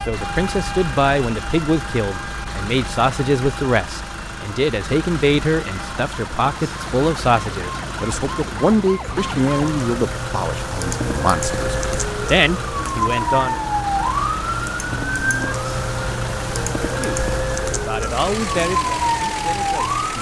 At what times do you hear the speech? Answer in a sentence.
The speech can be heard from 0.1 to 13.6 s and from 16.9 to 20.1 s.